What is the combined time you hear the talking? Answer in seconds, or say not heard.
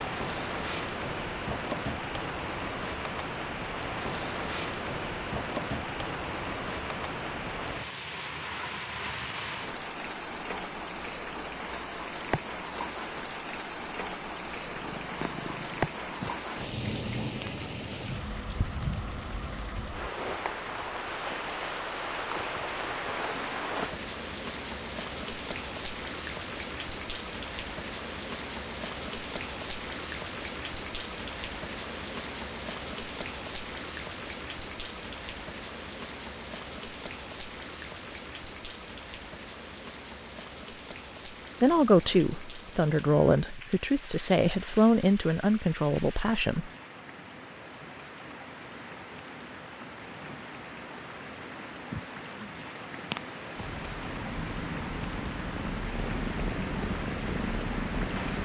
5 s.